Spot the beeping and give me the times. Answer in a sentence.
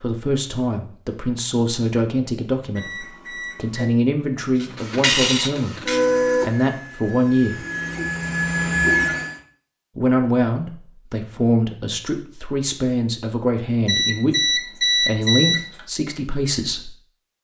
You can hear the beeping from 2.8 to 3.9 s and from 13.8 to 15.8 s.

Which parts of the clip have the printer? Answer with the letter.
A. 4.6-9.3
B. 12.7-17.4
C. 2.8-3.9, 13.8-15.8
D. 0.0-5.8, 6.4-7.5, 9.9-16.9
A.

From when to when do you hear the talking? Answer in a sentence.
The talking can be heard from 0.0 to 5.8 s, from 6.4 to 7.5 s and from 9.9 to 16.9 s.